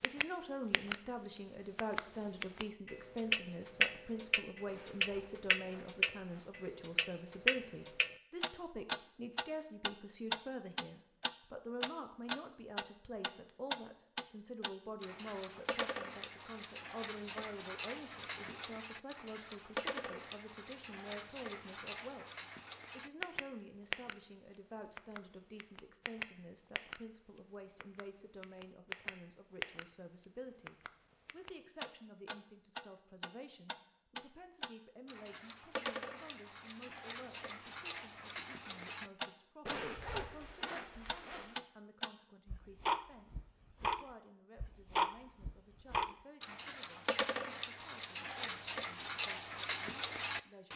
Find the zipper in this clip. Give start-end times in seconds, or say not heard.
4.7-6.7, 39.6-41.6.